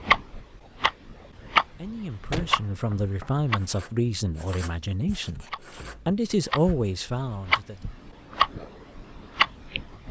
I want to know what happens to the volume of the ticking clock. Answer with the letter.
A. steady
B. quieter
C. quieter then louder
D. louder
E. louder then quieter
C.